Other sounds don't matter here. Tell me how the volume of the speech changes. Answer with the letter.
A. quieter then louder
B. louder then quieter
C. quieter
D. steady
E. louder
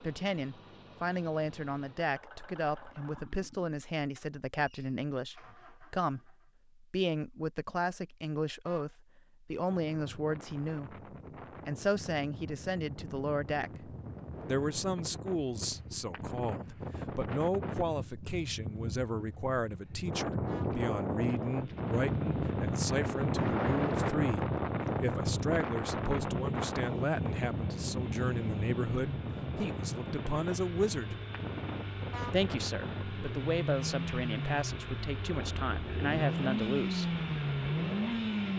D.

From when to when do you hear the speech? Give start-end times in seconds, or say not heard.
0.0-11.1, 11.7-31.1, 32.3-37.1.